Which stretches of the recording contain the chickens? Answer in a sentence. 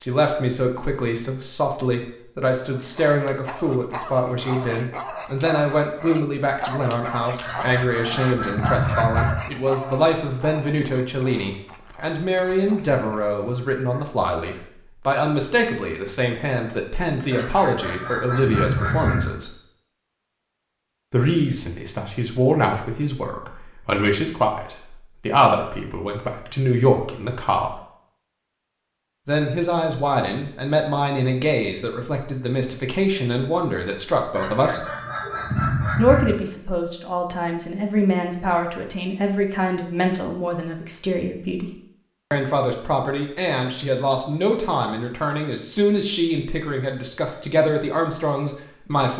You can hear the chickens from 7.4 to 9.3 s, from 17.3 to 19.2 s and from 34.4 to 36.3 s.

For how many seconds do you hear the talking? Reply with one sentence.
The talking can be heard for 44 seconds in total.